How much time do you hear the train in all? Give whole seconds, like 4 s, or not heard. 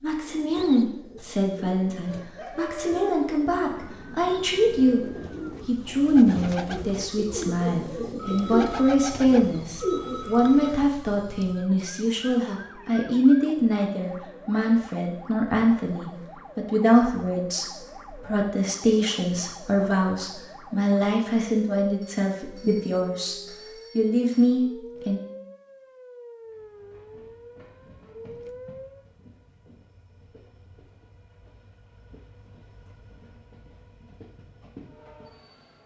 9 s.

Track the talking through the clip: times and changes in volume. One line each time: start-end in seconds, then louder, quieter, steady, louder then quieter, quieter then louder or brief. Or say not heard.
0.0-25.2 steady.